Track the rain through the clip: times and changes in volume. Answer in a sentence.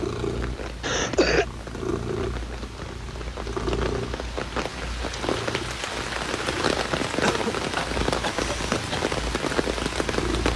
The rain can be heard from 0.0 to 10.5 s, getting louder.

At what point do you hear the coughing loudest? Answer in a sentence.
The loudest moment of the coughing is at 1 second.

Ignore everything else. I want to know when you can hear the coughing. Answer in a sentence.
The coughing can be heard from 0.8 to 1.4 s and from 7.2 to 9.1 s.